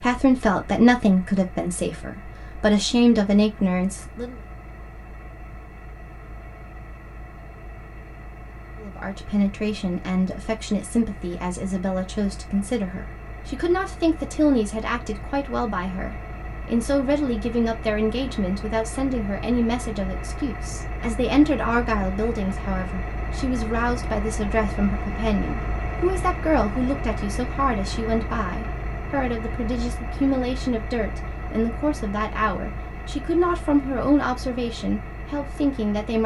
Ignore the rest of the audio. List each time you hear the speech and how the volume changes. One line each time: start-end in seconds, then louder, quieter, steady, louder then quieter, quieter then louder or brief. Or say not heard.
0.0-4.3 quieter then louder
8.8-36.2 steady.